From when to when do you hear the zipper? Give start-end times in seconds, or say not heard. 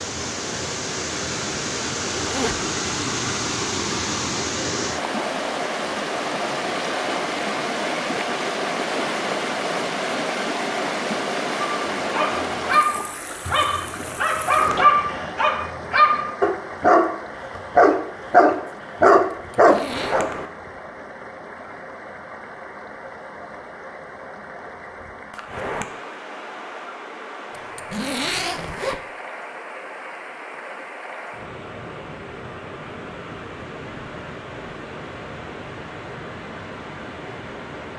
2.1-2.7, 19.3-20.1, 27.5-29.0.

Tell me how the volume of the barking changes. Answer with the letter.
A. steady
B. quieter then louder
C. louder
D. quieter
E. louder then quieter
C.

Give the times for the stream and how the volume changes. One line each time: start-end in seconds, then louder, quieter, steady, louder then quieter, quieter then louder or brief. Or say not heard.
0.0-37.9 quieter.